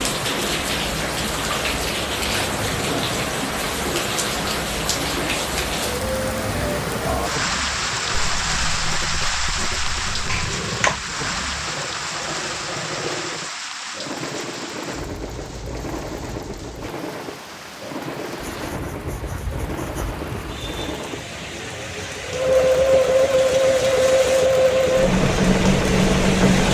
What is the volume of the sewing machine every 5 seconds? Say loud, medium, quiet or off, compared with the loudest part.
quiet, quiet, quiet, quiet, loud, loud.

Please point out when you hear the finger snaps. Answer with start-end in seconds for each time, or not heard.
10.2-11.0.